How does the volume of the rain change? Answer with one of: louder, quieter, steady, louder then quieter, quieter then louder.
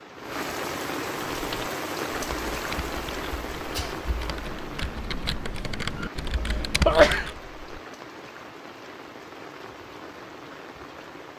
quieter.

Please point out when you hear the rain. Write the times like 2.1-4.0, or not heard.
0.0-11.3.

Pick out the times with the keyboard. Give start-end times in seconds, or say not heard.
1.1-7.4.